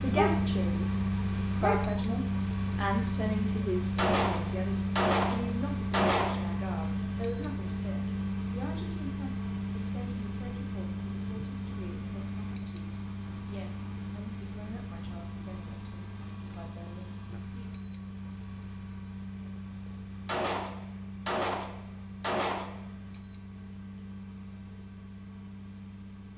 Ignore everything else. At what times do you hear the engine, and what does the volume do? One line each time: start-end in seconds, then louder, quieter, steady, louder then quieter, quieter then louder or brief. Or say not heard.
0.0-26.3 quieter.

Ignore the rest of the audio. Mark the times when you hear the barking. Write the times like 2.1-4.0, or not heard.
0.1-2.0.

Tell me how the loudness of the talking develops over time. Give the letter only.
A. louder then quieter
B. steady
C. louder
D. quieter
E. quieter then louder
D.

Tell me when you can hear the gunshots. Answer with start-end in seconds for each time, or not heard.
4.0-6.5, 20.2-22.9.